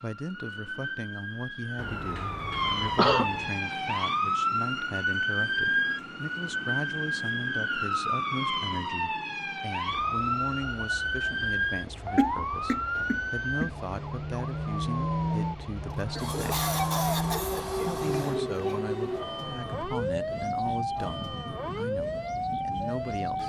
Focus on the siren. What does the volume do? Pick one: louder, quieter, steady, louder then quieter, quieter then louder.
steady.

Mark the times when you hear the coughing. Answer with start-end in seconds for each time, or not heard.
2.8-3.2, 12.2-13.7, 16.1-18.8.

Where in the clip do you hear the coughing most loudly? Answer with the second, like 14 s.
3 s.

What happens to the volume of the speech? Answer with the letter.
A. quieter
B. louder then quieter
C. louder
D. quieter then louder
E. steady
E.